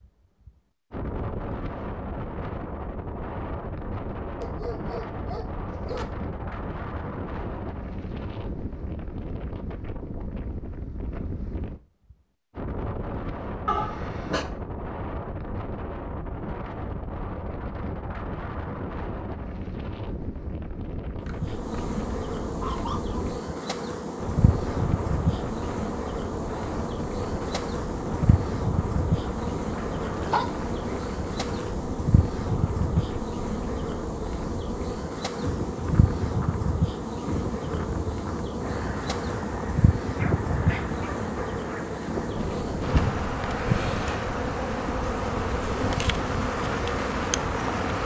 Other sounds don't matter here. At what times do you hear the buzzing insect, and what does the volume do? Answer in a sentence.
The buzzing insect can be heard from 21.2 to 48.0 s, at a steady volume.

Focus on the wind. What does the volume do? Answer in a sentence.
The volume of the wind stays about the same.